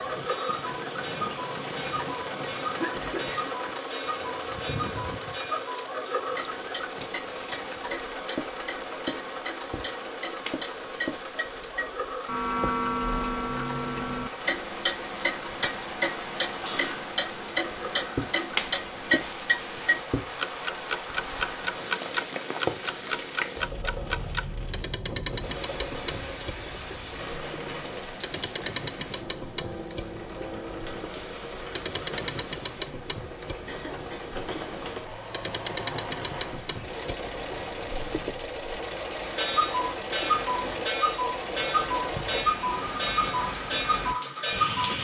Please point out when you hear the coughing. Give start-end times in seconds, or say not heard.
2.8-3.7, 16.6-17.1, 33.6-34.7.